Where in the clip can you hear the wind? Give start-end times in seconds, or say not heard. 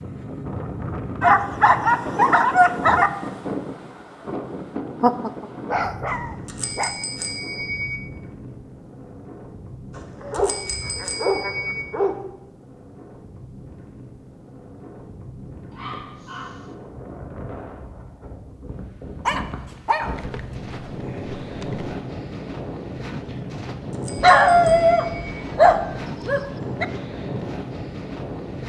0.0-28.6.